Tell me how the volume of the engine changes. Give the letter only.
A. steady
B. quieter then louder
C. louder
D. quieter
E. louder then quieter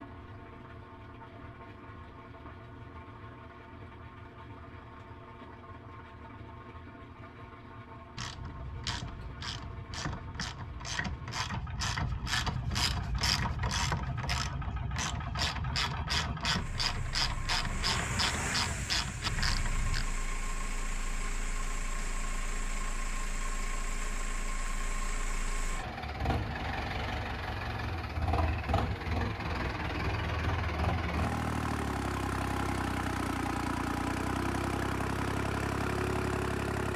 C.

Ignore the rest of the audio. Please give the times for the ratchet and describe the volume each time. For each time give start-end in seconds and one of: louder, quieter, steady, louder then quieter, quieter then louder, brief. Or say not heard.
8.2-20.1 louder.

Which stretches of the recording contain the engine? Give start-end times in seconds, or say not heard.
0.0-36.9.